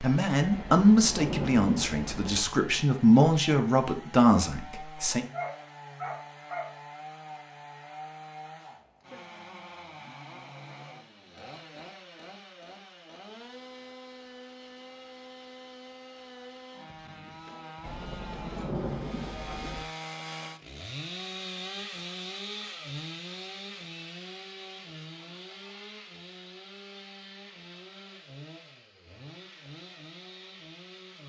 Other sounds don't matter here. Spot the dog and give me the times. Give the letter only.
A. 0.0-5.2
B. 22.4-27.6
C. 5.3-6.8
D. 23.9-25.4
C.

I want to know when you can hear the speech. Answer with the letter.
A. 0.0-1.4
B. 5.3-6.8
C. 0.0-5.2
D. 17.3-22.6
C.